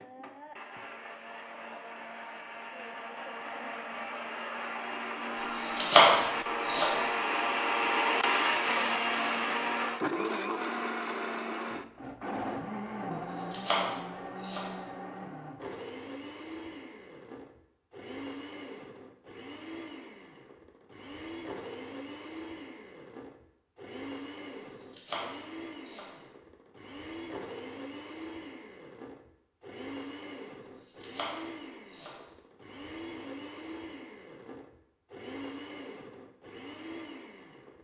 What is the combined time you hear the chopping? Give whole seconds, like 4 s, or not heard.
6 s.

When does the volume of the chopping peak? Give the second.
6 s.